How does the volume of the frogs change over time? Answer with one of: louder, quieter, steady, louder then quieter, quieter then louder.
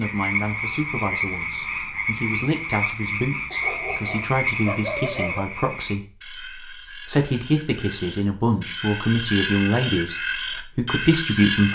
quieter then louder.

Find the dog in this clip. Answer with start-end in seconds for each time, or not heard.
3.5-5.5.